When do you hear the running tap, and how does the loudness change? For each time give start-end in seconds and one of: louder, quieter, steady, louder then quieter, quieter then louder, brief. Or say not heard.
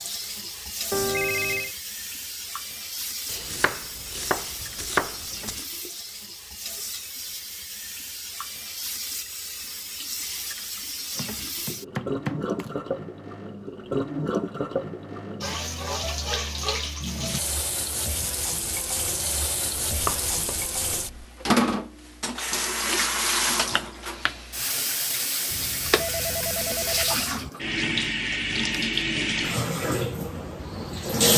0.0-31.3 louder.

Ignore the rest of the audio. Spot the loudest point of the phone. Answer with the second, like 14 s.
1 s.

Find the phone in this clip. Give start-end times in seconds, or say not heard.
0.9-1.8, 25.5-27.5.